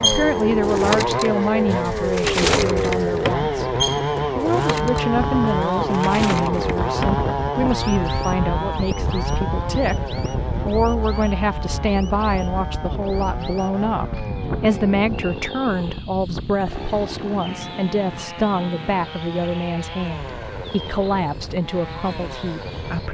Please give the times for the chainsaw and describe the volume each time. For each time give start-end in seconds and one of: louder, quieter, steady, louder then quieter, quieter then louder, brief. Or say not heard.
0.0-23.0 quieter.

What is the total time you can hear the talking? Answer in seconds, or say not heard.
23 s.